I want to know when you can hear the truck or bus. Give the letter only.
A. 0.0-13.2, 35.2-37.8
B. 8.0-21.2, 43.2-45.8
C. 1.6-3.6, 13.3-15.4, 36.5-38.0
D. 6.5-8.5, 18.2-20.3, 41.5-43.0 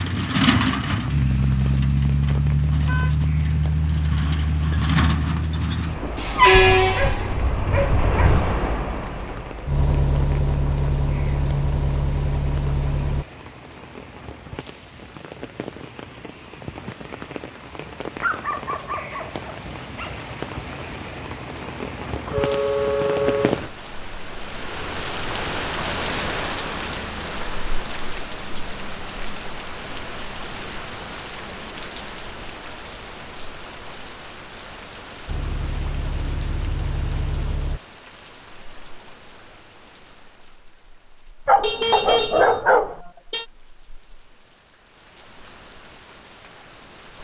A.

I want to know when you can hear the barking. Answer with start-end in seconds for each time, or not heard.
6.5-8.5, 18.2-20.3, 41.5-43.0.